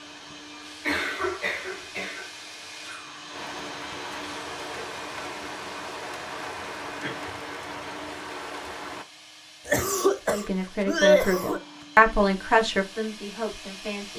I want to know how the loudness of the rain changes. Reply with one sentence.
The loudness of the rain goes up.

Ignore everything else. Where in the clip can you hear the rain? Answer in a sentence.
The rain can be heard from 0.0 to 9.1 s.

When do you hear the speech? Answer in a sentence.
You can hear the speech from 10.2 to 14.1 s.